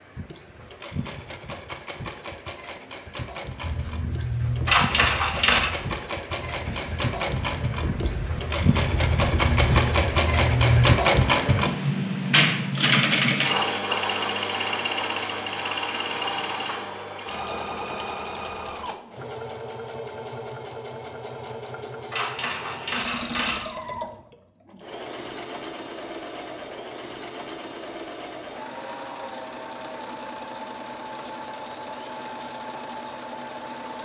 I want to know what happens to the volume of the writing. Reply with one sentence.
The volume of the writing goes down, then up.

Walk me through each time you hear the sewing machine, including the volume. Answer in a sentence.
The sewing machine can be heard from 0.0 to 34.0 s, getting louder then quieter.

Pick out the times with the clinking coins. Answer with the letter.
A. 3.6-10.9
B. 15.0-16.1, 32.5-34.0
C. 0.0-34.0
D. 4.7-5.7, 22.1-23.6
D.